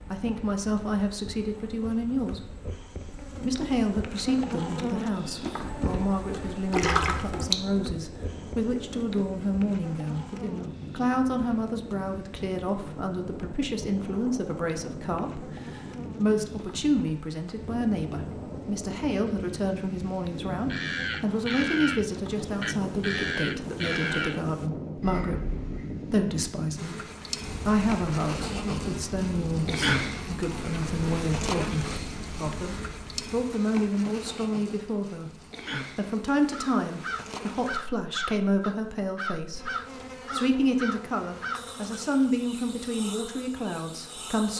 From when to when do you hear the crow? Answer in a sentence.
The crow can be heard from 20.7 to 24.4 s, from 25.0 to 26.1 s and from 36.5 to 42.0 s.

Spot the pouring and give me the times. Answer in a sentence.
You can hear the pouring from 6.7 to 7.6 s.